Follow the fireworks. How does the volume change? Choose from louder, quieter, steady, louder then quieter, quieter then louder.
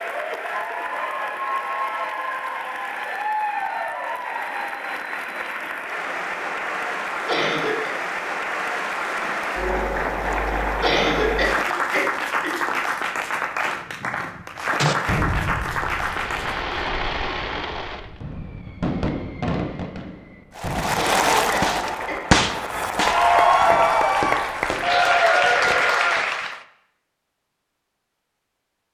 louder then quieter.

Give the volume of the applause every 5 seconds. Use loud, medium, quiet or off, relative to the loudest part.
medium, medium, medium, medium, loud, loud.